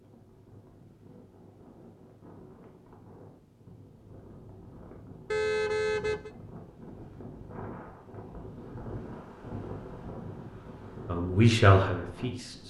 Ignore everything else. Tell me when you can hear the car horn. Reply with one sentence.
The car horn can be heard from 5.3 to 6.3 s.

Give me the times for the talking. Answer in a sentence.
The talking can be heard from 11.1 to 12.6 s.